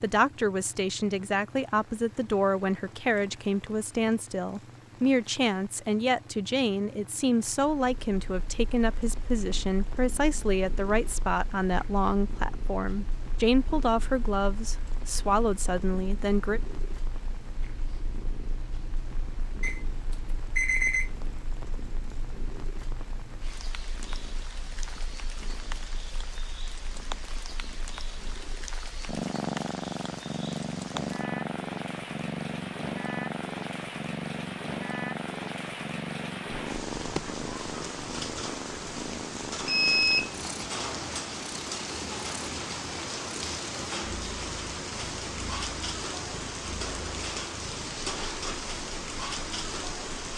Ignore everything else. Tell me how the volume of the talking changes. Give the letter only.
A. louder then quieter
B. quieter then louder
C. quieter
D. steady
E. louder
D.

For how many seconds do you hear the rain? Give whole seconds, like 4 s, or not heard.
50 s.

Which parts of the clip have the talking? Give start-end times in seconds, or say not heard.
0.0-16.6.